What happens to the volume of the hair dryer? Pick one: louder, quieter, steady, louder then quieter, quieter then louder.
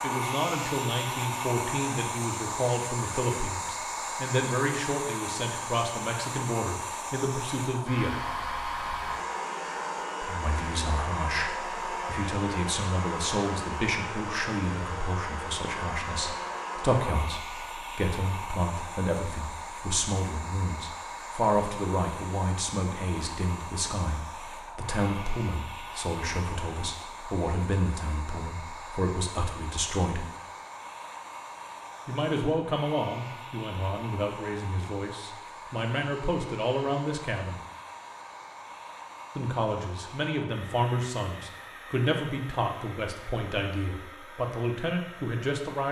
quieter.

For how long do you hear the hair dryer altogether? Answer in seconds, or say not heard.
46 s.